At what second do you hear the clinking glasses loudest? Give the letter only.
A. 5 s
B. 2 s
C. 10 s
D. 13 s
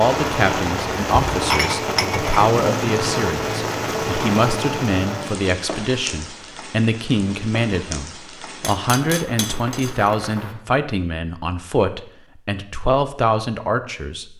B.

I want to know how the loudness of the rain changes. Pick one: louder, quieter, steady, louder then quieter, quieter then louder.
quieter.